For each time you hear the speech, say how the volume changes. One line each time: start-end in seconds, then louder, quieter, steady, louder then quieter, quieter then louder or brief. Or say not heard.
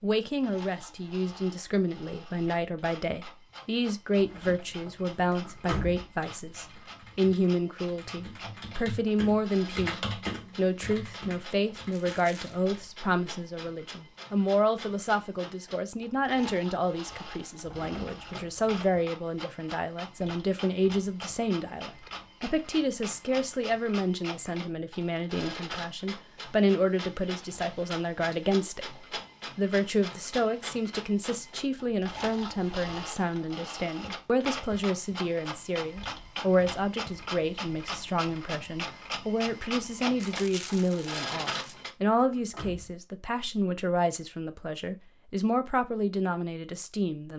0.0-47.3 steady.